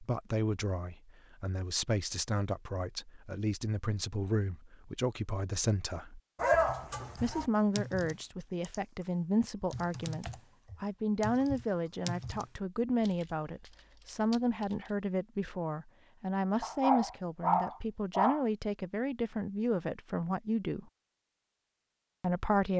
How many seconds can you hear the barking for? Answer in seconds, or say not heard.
3 s.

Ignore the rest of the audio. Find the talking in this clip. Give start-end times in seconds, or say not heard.
0.0-6.2, 7.2-20.9, 22.2-22.7.